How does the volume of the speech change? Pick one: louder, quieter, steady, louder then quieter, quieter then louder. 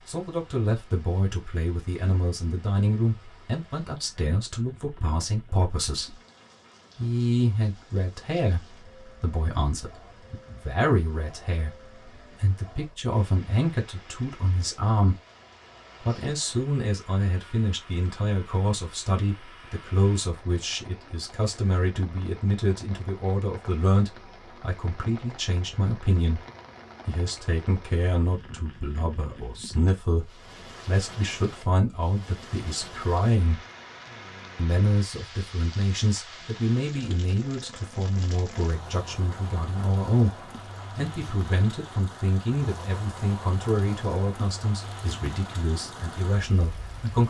steady.